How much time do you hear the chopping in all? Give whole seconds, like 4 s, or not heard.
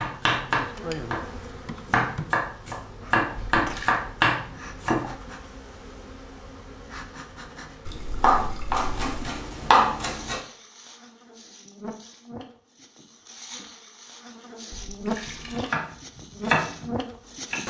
10 s.